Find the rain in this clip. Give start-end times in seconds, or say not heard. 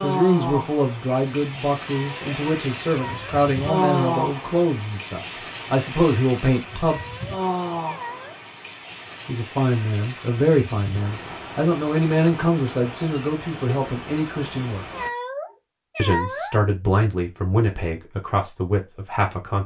0.0-15.1.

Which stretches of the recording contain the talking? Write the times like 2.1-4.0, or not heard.
0.0-7.0, 9.2-14.8, 15.9-19.6.